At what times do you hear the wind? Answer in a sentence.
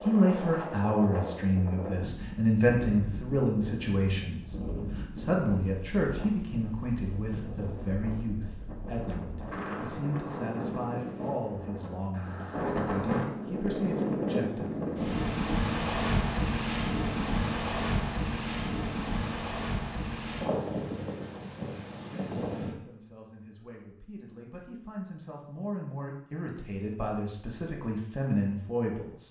The wind can be heard from 0.0 to 22.8 s.